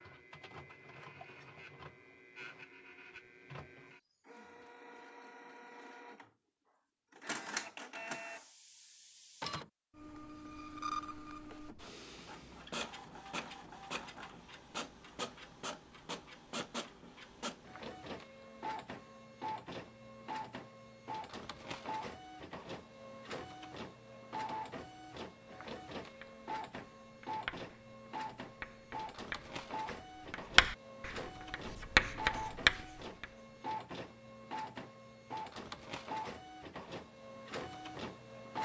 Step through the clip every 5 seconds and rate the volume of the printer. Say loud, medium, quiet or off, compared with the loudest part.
medium, loud, loud, loud, loud, loud, loud, loud.